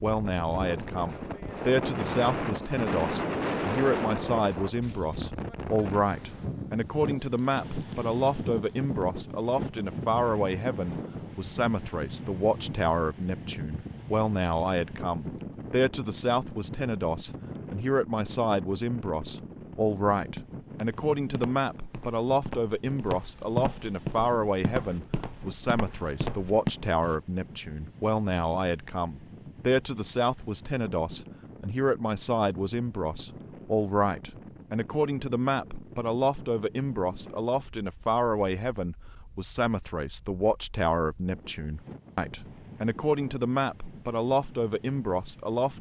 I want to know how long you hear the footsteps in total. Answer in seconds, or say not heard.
7 s.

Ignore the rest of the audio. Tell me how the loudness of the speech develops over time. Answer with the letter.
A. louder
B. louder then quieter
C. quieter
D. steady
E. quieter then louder
D.